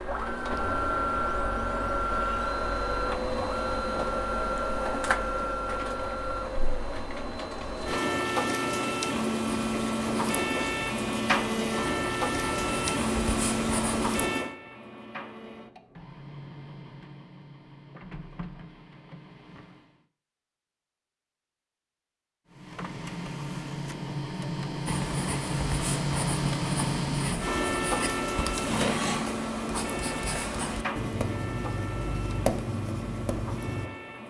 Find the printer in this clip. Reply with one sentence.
You can hear the printer from 0.0 to 20.1 s and from 22.5 to 34.2 s.